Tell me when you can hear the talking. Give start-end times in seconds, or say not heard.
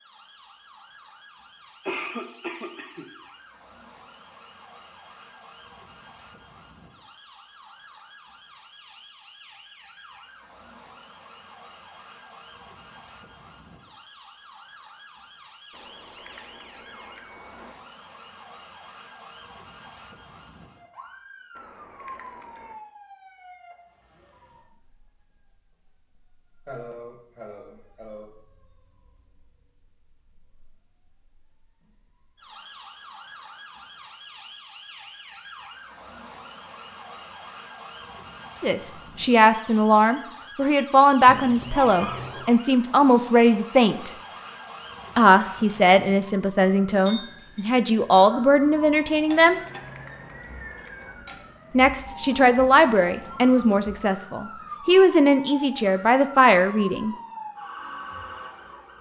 38.6-44.1, 45.1-49.6, 51.7-57.1.